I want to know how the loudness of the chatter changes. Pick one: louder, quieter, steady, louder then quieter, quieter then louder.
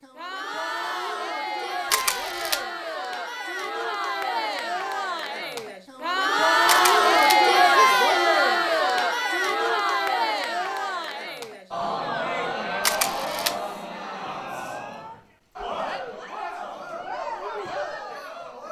louder then quieter.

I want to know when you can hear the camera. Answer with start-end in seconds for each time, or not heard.
1.9-2.6, 6.7-7.4, 12.8-13.6.